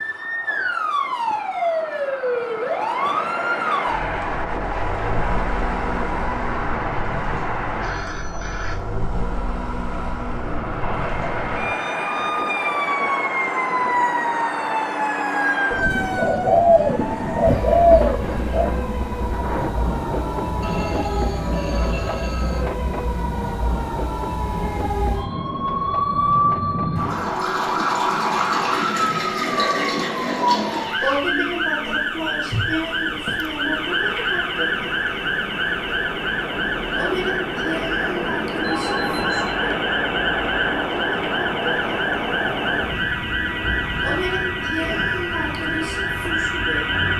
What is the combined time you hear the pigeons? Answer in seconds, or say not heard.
3 s.